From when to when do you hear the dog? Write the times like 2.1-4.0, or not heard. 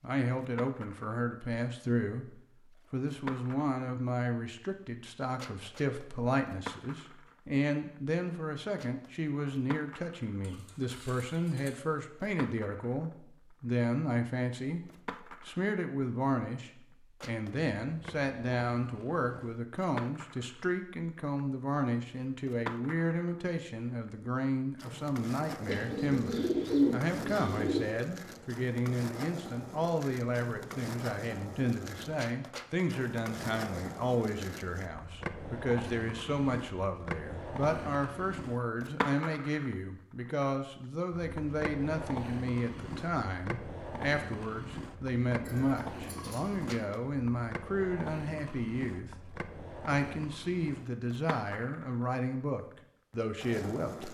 not heard.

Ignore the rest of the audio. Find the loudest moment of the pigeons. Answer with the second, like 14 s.
27 s.